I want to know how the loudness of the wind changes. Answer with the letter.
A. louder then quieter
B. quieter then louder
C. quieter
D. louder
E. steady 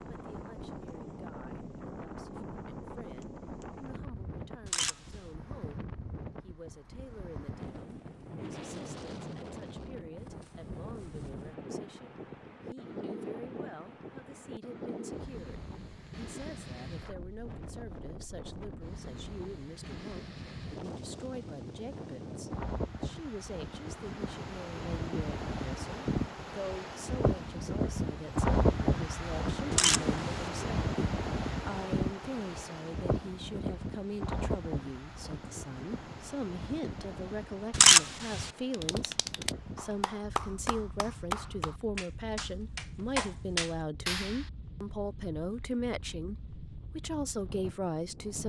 A.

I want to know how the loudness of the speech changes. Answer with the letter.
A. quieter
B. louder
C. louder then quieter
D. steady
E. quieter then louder
B.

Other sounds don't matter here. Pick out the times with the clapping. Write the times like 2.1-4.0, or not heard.
38.7-44.5.